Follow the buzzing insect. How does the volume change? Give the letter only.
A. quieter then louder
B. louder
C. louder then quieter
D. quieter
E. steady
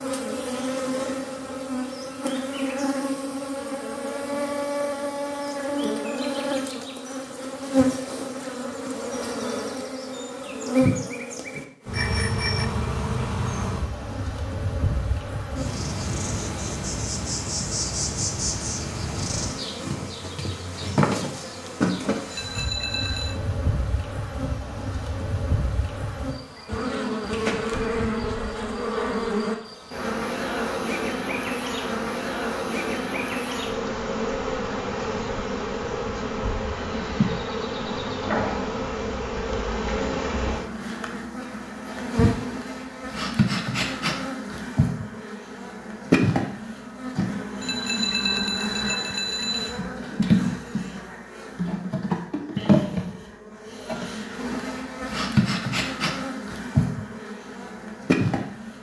E.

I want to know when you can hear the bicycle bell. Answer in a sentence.
You can hear the bicycle bell from 11.9 to 12.7 s, from 22.3 to 23.4 s and from 47.6 to 49.8 s.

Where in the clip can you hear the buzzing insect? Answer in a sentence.
The buzzing insect can be heard from 0.0 to 58.7 s.